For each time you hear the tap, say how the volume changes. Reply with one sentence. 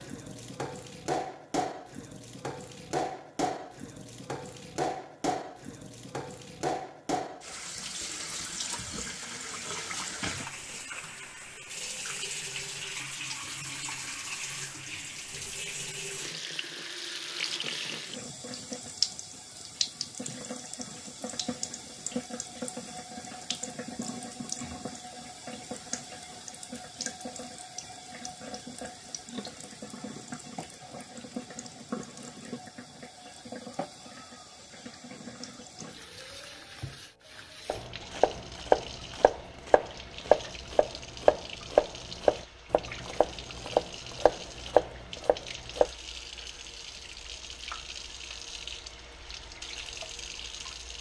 You can hear the tap from 0.0 to 50.9 s, getting quieter.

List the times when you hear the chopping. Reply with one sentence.
You can hear the chopping from 37.6 to 45.9 s.